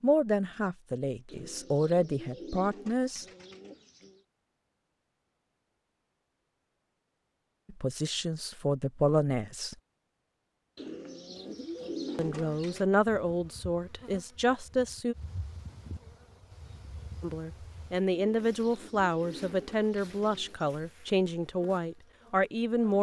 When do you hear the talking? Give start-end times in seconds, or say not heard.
0.0-3.2, 7.7-9.8, 12.2-15.2, 17.2-22.9.